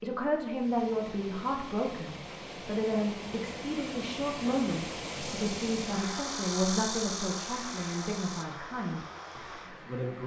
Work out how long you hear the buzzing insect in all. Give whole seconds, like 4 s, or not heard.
3 s.